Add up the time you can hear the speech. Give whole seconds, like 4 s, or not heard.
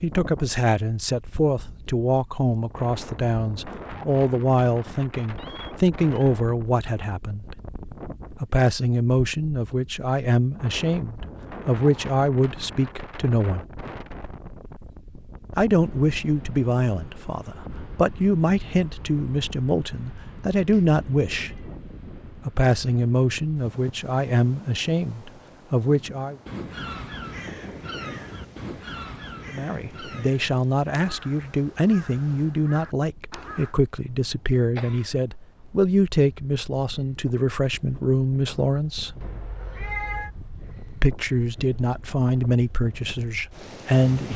36 s.